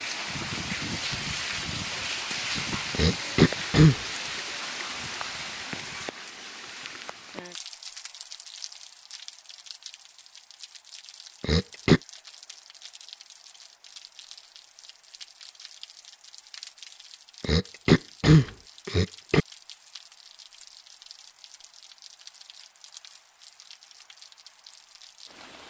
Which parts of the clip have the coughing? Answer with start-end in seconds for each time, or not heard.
2.9-4.0, 11.4-12.0, 17.4-19.4.